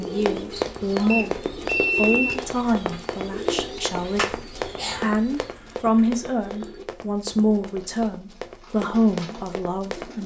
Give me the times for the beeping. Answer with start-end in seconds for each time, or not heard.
1.1-2.4.